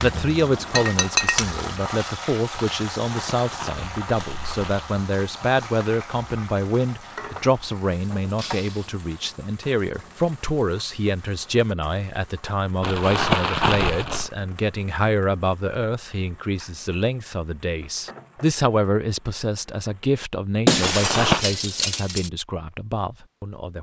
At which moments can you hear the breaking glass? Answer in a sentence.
You can hear the breaking glass from 0.8 to 1.5 s, from 8.3 to 8.9 s and from 20.6 to 22.3 s.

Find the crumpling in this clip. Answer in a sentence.
You can hear the crumpling from 3.0 to 4.8 s, from 12.8 to 14.3 s and from 20.8 to 21.4 s.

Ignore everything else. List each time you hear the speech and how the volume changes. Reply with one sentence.
The speech can be heard from 0.0 to 23.7 s, at a steady volume.